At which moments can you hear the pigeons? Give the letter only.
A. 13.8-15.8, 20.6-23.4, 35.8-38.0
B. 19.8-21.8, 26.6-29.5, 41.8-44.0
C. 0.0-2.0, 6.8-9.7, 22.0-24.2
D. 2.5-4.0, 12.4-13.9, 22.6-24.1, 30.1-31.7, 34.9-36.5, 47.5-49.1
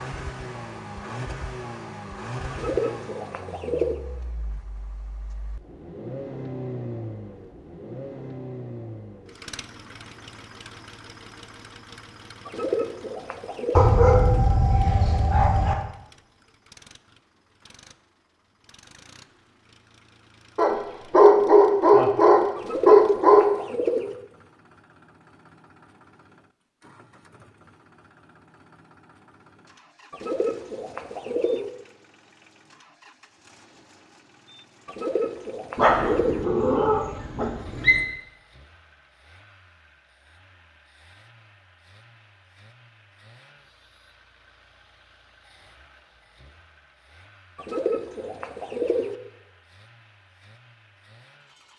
D.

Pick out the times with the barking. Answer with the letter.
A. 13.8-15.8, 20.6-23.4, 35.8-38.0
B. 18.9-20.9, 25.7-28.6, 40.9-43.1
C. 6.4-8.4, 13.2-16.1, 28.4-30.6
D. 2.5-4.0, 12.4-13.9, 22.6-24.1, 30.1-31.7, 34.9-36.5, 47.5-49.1
A.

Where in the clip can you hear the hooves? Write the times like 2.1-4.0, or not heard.
not heard.